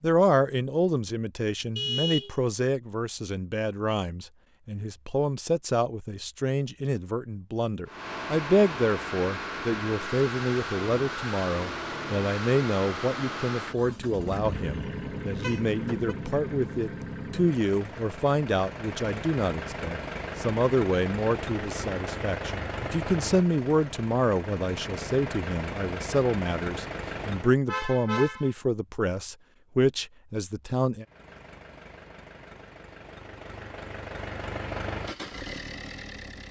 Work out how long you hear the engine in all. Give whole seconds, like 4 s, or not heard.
25 s.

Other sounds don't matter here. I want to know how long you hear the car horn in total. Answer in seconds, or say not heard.
2 s.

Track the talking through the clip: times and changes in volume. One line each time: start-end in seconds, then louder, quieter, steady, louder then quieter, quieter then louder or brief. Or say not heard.
0.0-31.1 steady.